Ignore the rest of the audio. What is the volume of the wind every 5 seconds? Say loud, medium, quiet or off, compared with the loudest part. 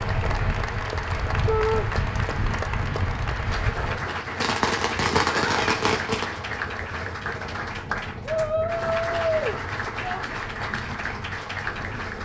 loud, medium, medium.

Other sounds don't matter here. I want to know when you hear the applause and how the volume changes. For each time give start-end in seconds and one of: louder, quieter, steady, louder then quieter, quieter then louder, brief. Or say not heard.
0.0-12.2 steady.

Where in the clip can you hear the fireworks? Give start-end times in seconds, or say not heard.
4.4-6.3.